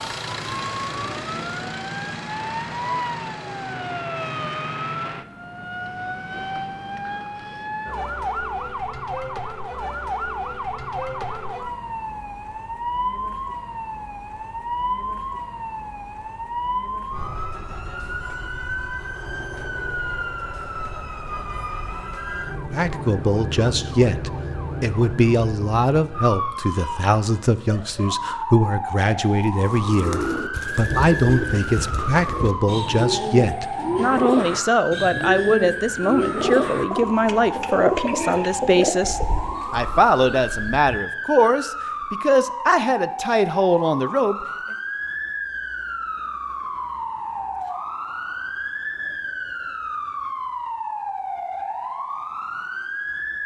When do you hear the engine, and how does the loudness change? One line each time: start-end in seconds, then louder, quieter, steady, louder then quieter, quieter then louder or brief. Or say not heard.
0.0-4.0 quieter.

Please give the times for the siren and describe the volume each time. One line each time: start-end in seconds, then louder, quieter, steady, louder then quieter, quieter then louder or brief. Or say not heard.
0.0-53.4 steady.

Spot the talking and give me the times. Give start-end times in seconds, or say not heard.
22.7-44.5.